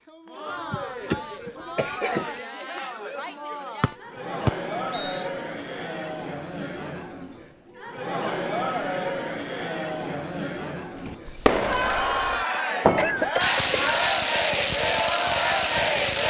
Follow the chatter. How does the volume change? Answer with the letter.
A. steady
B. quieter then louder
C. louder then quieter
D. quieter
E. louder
E.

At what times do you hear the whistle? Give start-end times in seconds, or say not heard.
3.8-5.2.